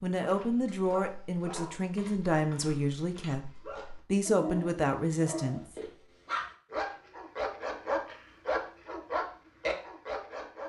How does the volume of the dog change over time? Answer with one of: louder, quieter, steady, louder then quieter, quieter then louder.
louder.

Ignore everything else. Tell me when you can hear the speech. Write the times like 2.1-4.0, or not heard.
0.0-5.6.